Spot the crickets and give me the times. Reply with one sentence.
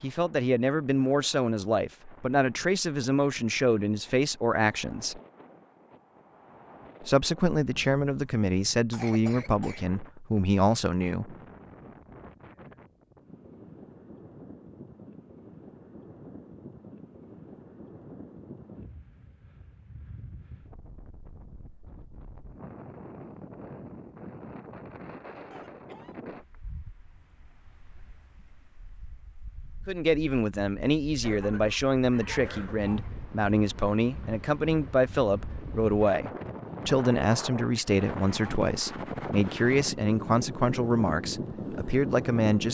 You can't hear the crickets here.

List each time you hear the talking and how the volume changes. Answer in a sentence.
You can hear the talking from 0.0 to 5.2 s, at a steady volume; from 7.0 to 11.3 s, getting quieter then louder; and from 29.9 to 42.7 s, at a steady volume.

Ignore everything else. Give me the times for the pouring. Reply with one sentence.
You can't hear the pouring here.